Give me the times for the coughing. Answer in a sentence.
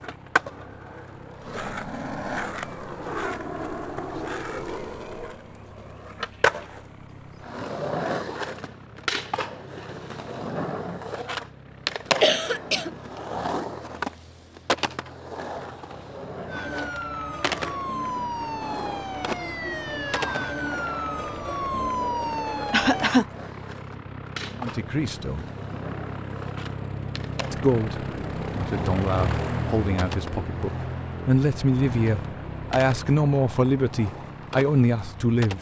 The coughing can be heard from 12.2 to 12.9 s and from 22.7 to 23.2 s.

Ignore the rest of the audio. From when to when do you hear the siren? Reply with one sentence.
You can hear the siren from 16.4 to 23.1 s.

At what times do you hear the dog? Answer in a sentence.
You can't hear the dog here.